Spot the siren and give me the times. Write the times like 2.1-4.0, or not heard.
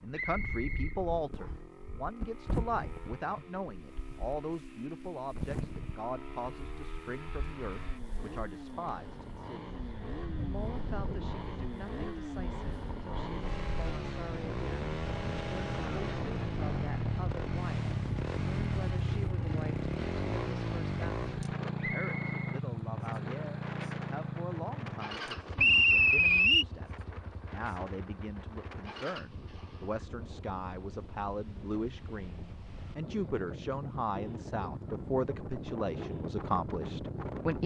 not heard.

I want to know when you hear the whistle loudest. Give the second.
26 s.